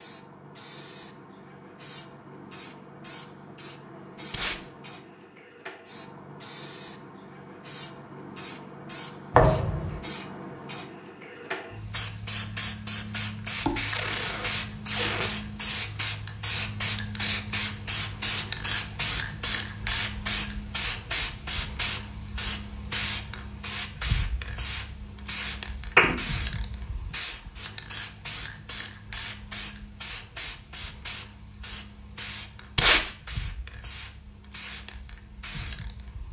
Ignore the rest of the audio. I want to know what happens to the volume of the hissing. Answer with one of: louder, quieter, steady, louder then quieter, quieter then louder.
louder then quieter.